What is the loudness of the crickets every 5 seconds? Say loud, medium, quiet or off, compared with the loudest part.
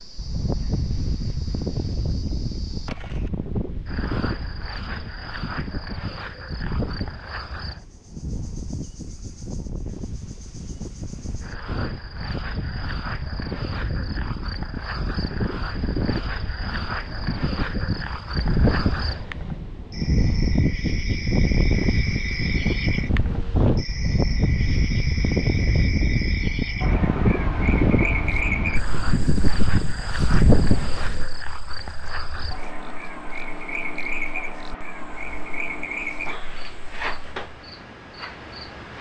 medium, medium, medium, loud, loud, loud, loud, loud.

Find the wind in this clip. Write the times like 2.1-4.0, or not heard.
0.1-31.3.